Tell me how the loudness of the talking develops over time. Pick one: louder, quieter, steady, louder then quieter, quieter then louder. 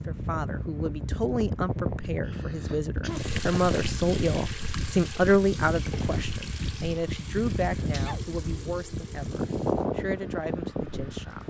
louder then quieter.